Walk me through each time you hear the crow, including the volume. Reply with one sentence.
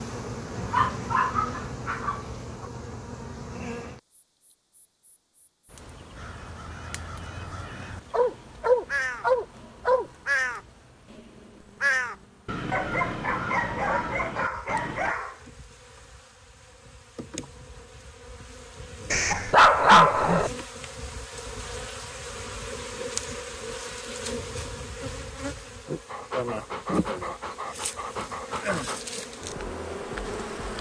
You can hear the crow from 6.2 to 15.2 s, getting louder then quieter.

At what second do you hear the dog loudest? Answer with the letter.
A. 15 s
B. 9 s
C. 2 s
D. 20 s
D.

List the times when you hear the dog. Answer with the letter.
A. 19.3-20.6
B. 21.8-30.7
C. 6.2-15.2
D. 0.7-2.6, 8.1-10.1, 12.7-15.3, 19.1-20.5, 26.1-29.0
D.